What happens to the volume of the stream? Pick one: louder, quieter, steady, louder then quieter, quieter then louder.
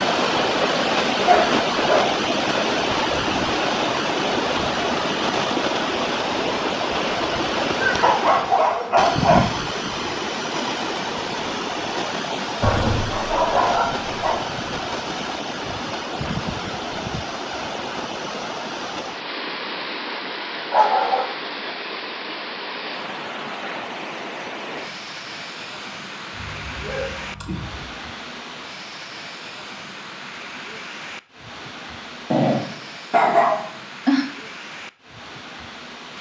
quieter.